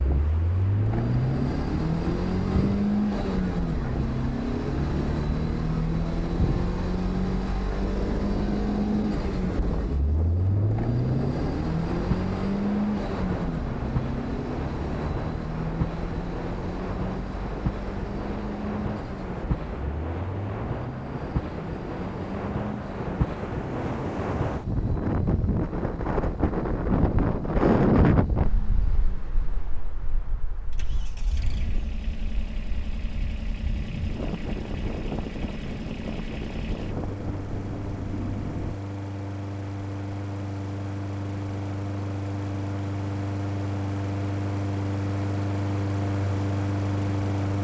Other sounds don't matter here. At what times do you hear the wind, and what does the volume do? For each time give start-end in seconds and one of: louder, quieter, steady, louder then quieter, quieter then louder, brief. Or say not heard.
0.0-38.8 louder then quieter.